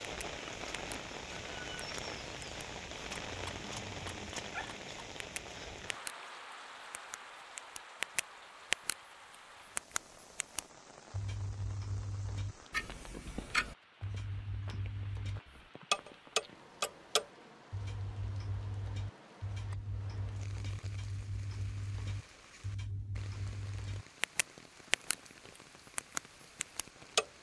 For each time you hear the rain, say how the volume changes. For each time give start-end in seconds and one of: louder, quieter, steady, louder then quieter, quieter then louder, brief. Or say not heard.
0.0-27.3 quieter.